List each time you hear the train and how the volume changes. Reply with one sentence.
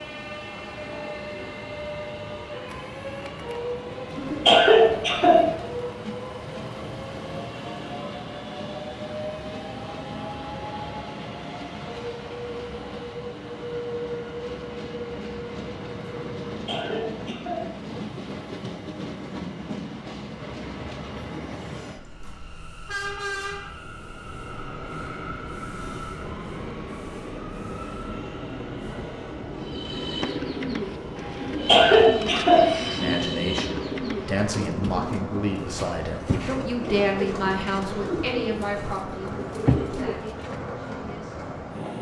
You can hear the train from 0.0 to 41.9 s, at a steady volume.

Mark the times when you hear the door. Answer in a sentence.
The door can't be heard in this clip.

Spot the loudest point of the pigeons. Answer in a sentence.
The loudest moment of the pigeons is at 40 seconds.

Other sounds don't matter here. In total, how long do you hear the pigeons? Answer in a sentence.
You can hear the pigeons for 11 seconds altogether.